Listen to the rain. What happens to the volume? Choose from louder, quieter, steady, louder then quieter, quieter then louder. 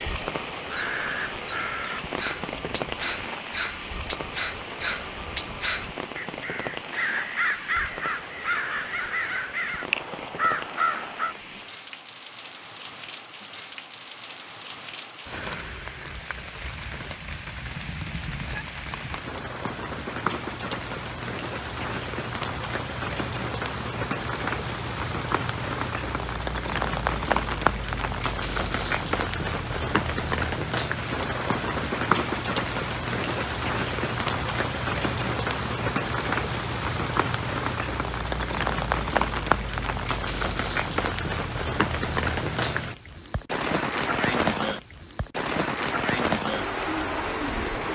louder.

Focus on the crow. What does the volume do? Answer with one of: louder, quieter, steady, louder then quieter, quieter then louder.
louder.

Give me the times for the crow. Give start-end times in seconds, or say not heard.
0.7-11.3.